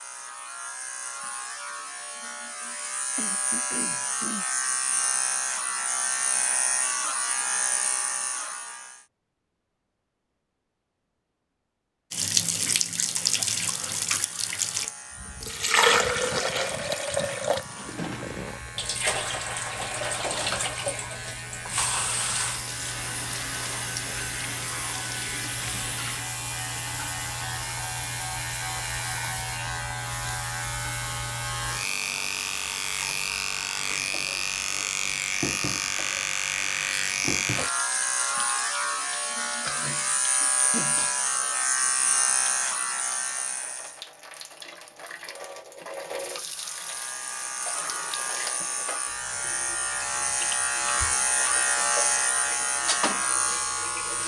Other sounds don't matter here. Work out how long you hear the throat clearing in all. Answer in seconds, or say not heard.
3 s.